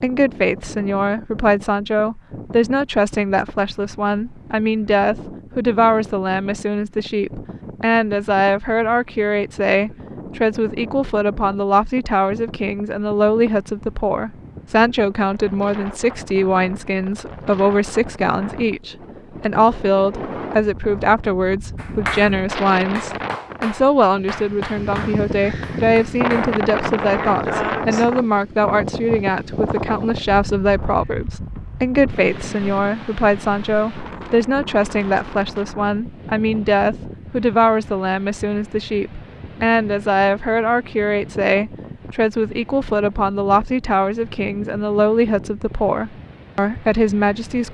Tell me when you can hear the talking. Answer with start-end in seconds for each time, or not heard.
0.0-47.7.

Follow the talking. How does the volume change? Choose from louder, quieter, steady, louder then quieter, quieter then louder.
steady.